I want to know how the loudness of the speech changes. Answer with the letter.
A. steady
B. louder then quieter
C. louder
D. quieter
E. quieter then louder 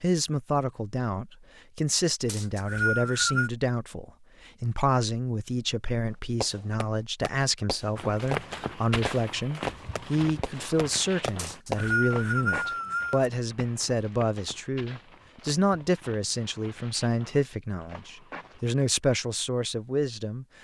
A.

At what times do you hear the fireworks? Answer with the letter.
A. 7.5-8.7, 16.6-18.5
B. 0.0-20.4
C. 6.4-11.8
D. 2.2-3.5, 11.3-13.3
C.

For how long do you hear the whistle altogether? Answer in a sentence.
The whistle can be heard for 3 seconds in total.